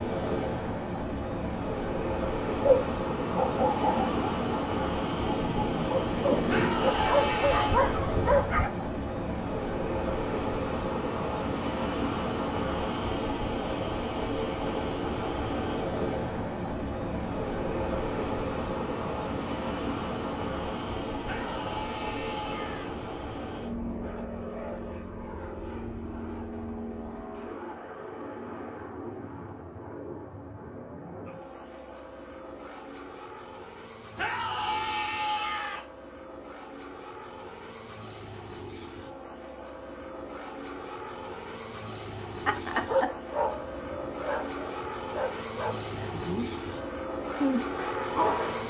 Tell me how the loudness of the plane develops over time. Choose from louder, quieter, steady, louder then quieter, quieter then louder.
quieter then louder.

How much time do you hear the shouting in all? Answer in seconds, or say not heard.
5 s.